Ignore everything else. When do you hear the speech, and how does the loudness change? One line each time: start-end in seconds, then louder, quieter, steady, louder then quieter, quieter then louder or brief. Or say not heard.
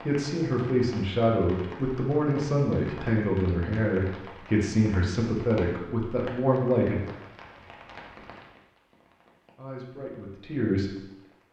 0.0-7.0 steady
9.6-10.9 brief.